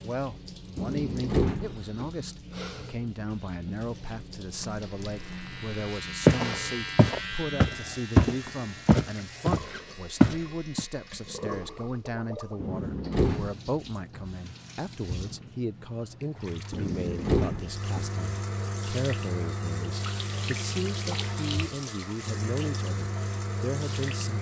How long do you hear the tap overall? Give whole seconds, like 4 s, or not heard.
24 s.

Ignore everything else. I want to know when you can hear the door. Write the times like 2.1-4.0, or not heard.
0.8-2.1, 12.6-13.6, 16.7-18.1.